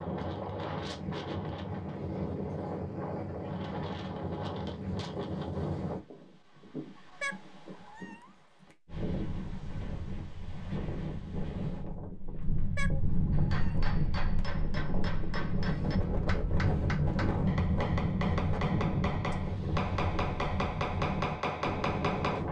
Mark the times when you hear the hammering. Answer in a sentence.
You can hear the hammering from 13.3 to 22.4 s.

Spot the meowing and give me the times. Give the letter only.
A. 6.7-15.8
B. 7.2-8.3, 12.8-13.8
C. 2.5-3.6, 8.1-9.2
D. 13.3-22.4
B.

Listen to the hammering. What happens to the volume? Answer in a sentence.
The volume of the hammering goes up.